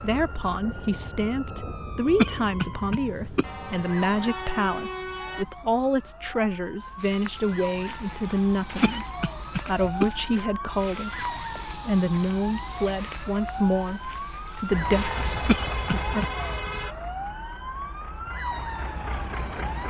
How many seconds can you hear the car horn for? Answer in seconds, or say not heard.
4 s.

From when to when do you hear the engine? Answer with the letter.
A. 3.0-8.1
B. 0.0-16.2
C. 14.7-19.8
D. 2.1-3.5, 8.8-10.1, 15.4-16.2
C.